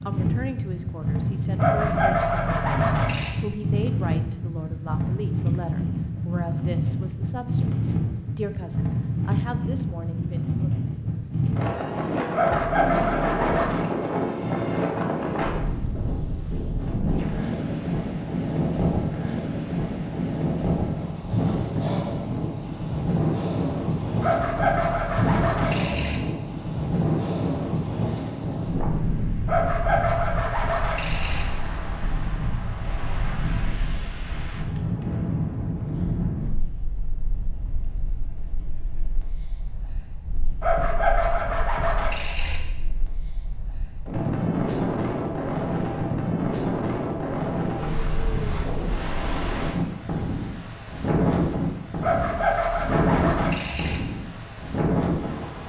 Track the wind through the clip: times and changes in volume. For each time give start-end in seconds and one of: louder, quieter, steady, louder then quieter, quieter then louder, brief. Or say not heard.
0.0-55.6 quieter then louder.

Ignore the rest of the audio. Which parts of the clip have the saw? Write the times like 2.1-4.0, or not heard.
1.6-3.4, 12.3-13.9, 24.2-26.2, 29.4-31.4, 40.6-42.6, 52.0-54.0.